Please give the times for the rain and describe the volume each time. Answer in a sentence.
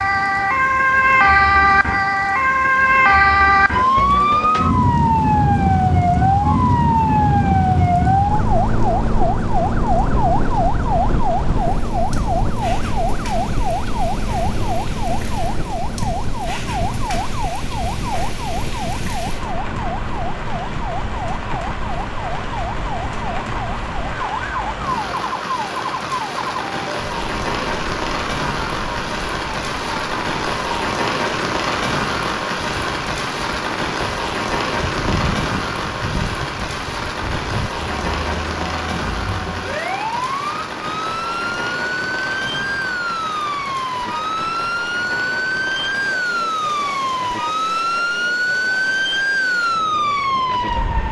The rain can be heard from 0.0 to 51.0 s, getting louder then quieter.